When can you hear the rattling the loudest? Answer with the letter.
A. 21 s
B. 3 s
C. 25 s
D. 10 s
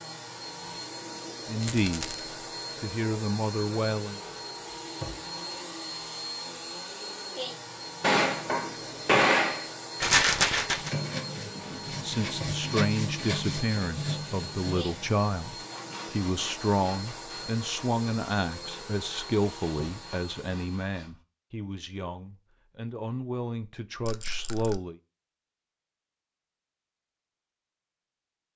D.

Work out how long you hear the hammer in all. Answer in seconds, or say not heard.
2 s.